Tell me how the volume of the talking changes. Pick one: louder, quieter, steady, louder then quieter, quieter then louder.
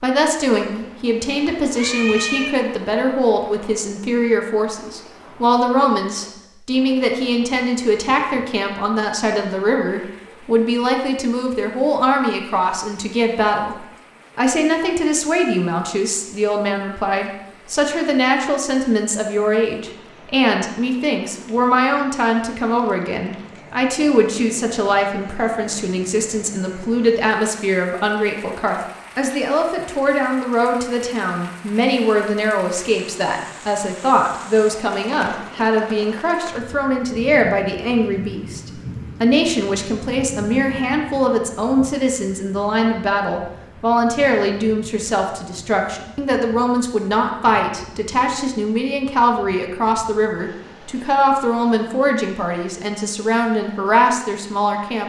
steady.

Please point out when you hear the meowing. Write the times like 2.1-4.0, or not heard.
0.8-2.5.